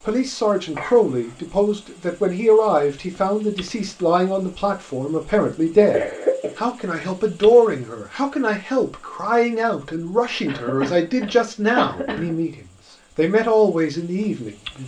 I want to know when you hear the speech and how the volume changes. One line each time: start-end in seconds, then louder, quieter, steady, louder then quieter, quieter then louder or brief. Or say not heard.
0.0-14.8 steady.